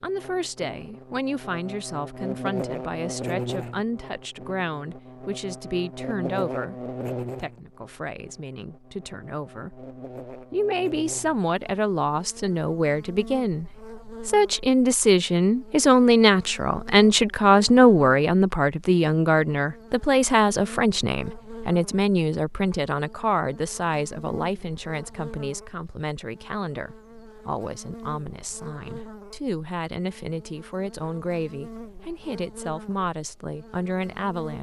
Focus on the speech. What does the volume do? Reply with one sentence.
The loudness of the speech goes up, then down.